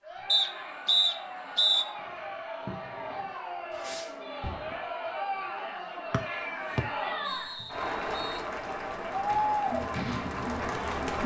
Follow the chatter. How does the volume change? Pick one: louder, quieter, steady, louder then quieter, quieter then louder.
louder.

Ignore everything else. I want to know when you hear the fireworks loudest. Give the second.
10 s.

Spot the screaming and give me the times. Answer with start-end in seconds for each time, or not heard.
not heard.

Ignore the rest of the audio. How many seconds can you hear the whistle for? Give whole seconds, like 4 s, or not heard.
4 s.